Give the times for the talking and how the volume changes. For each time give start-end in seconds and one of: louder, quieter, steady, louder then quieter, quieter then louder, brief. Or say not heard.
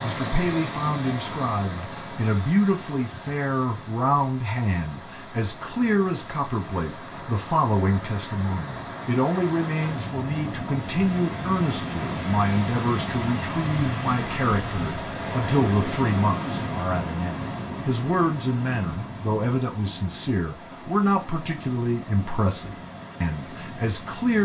0.0-24.4 steady.